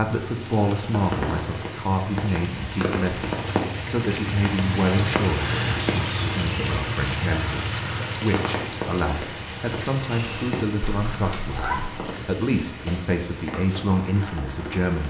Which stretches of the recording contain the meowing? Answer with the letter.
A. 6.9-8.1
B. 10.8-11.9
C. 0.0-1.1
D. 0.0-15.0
B.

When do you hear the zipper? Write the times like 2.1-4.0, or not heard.
not heard.